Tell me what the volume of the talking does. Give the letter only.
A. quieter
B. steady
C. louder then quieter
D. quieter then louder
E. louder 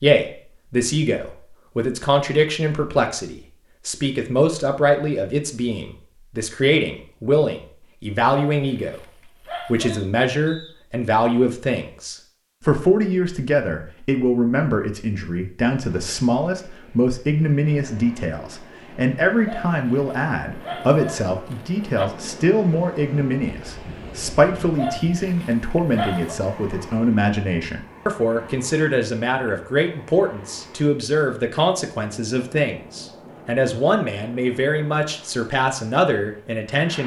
B.